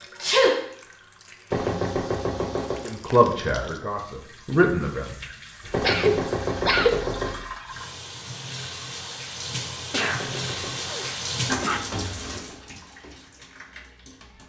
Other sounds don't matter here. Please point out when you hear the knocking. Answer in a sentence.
You can hear the knocking from 1.5 to 2.9 s, from 5.7 to 7.3 s and from 10.2 to 10.8 s.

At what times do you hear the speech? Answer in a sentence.
The speech can be heard from 2.9 to 5.0 s.